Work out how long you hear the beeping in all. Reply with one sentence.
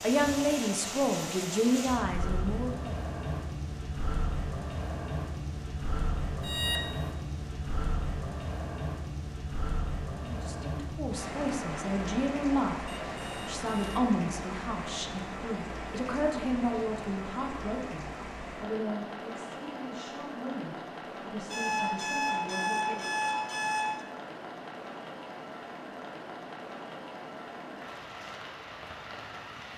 The beeping can be heard for 4 seconds in total.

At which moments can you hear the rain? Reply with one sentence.
You can hear the rain from 0.0 to 29.7 s.